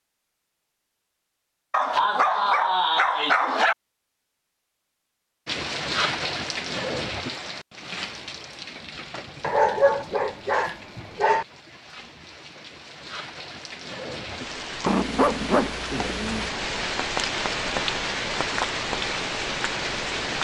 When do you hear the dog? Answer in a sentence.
You can hear the dog from 1.7 to 3.8 s, from 9.4 to 11.4 s and from 14.8 to 16.5 s.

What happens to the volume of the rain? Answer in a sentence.
The volume of the rain goes down, then up.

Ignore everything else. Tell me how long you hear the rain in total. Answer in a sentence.
You can hear the rain for 15 seconds altogether.